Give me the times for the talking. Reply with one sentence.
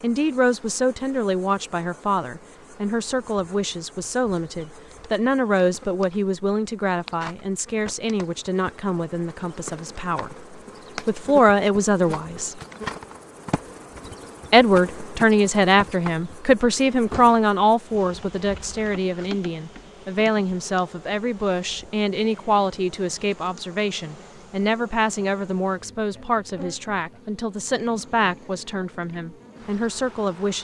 You can hear the talking from 0.0 to 10.3 s, from 11.1 to 12.6 s and from 14.5 to 30.5 s.